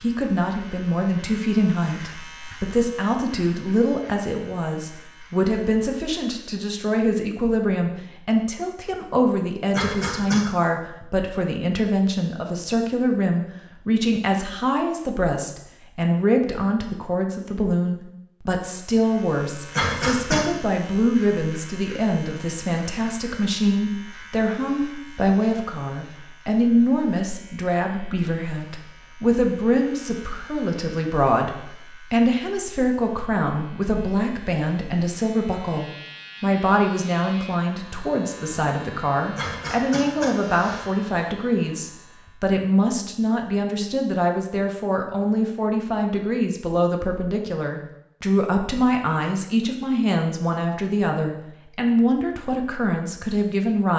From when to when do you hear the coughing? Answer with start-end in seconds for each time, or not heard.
9.7-10.4, 19.7-20.4, 39.4-40.9.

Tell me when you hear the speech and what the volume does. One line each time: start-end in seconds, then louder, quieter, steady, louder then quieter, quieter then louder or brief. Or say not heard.
0.0-53.9 steady.